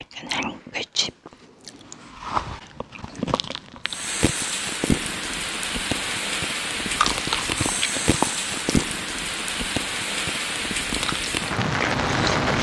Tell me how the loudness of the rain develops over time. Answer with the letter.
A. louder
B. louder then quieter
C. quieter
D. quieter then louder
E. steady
E.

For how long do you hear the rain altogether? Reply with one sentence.
The rain can be heard for 9 seconds in total.